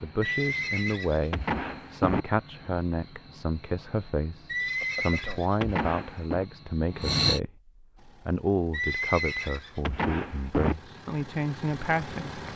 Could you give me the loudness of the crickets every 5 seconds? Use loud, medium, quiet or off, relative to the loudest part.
quiet, loud, off.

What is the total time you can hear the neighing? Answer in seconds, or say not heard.
6 s.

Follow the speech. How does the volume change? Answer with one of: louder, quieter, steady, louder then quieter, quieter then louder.
steady.